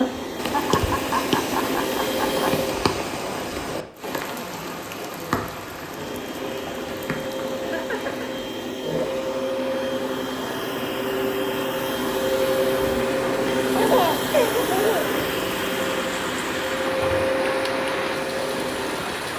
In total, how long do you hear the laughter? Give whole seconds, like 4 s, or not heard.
4 s.